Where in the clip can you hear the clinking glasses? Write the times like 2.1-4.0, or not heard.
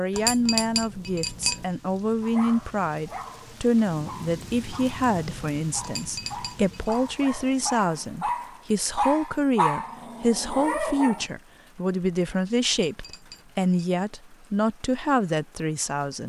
0.1-1.6, 5.8-7.0, 12.7-13.9.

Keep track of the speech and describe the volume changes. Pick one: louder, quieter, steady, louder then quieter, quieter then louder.
steady.